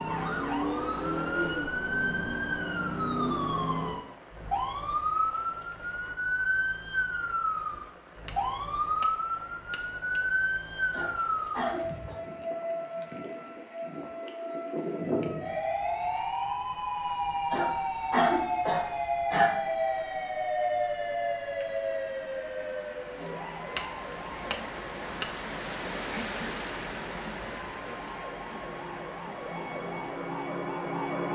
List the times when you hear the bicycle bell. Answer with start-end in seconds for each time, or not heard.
8.2-10.2, 23.8-25.3.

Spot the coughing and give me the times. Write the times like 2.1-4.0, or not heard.
10.9-12.2, 17.5-19.5.